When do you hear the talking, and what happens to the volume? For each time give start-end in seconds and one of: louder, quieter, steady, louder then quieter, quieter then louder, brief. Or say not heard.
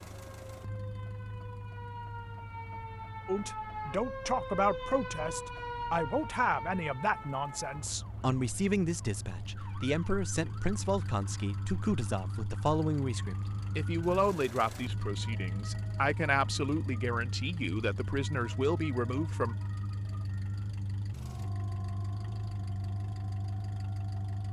3.2-19.6 steady.